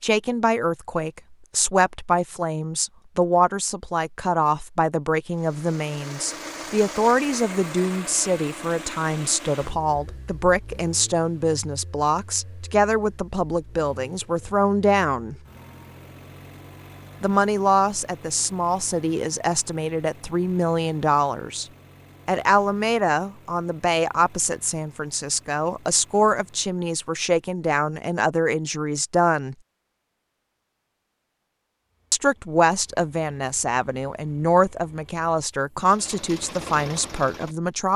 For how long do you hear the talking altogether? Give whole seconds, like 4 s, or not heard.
33 s.